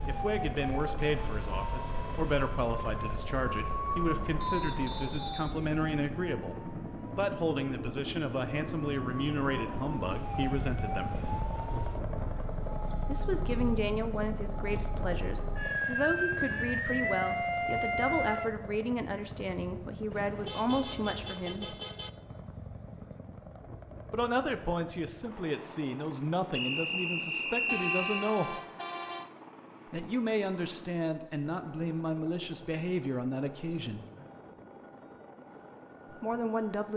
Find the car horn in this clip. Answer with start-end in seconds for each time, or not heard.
1.0-2.6, 20.1-22.1, 27.6-29.3.